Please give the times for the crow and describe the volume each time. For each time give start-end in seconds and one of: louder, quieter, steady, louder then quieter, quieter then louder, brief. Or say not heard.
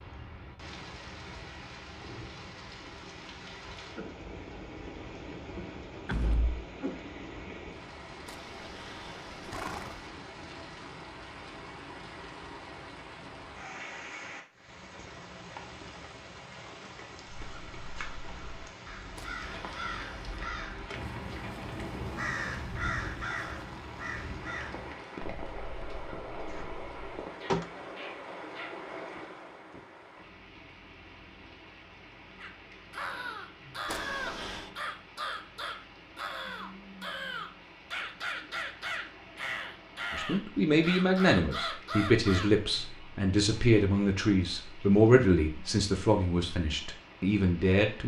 17.4-28.8 louder then quieter
32.4-42.5 steady.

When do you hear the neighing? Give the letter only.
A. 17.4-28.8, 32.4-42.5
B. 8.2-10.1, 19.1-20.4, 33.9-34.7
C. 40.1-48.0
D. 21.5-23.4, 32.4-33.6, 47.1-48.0
B.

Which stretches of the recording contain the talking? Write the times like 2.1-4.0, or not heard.
40.1-48.0.